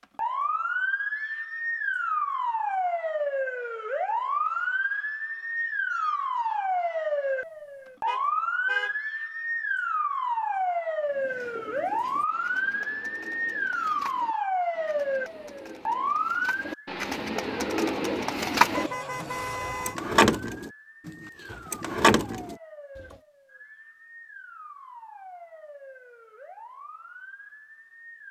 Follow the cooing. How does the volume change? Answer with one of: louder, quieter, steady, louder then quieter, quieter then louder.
louder.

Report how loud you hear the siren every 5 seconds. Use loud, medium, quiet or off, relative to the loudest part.
loud, loud, loud, loud, quiet, quiet.